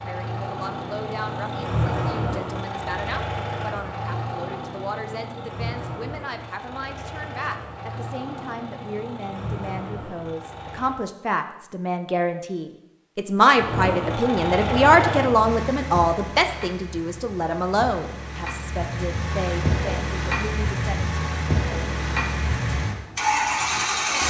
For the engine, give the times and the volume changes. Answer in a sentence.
You can hear the engine from 0.0 to 11.0 s, getting quieter; and from 13.6 to 24.2 s, getting quieter then louder.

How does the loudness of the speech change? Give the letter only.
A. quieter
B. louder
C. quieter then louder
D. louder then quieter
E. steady
D.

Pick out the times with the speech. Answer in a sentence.
The speech can be heard from 0.0 to 21.1 s.